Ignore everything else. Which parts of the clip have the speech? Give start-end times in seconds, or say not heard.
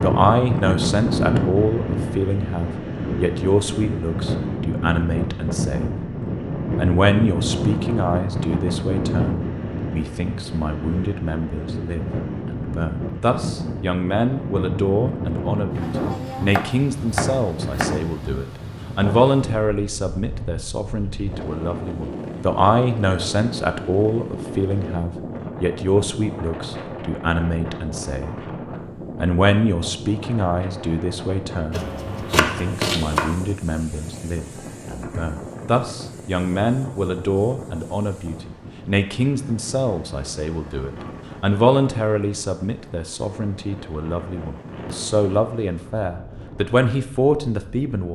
0.0-6.0, 6.8-28.4, 29.1-48.0.